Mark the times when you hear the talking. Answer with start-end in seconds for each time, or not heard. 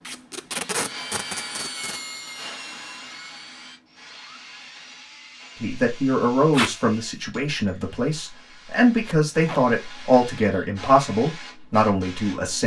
5.6-12.6.